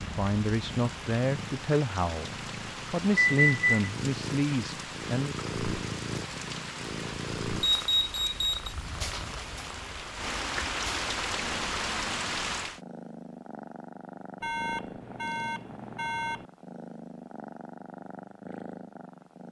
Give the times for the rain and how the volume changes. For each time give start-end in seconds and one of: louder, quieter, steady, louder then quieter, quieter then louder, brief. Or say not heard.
0.0-12.8 louder.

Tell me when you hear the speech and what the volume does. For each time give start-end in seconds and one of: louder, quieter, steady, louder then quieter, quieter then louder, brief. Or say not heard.
0.0-5.3 steady.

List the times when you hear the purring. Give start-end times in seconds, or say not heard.
0.0-19.4.